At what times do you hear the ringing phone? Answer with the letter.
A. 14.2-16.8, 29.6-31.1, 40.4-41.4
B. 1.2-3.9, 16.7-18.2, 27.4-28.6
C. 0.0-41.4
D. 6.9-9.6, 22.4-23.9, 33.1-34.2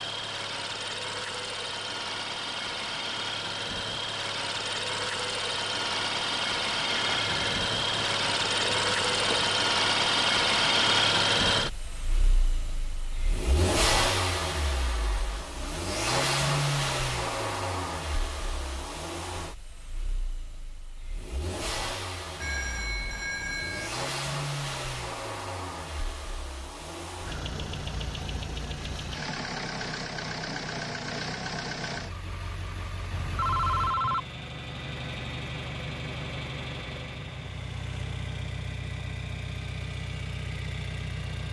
D.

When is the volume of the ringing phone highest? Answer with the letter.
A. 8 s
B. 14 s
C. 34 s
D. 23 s
C.